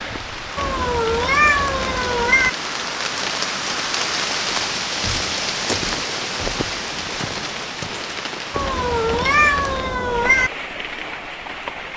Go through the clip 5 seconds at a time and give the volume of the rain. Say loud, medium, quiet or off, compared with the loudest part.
loud, loud, medium.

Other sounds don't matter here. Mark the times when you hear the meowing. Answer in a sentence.
The meowing can be heard from 0.6 to 2.5 s and from 8.5 to 10.5 s.